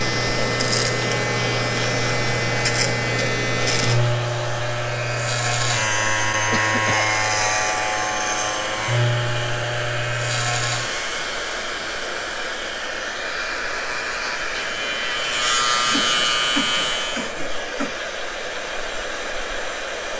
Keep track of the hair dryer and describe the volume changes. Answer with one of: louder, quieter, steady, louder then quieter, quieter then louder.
steady.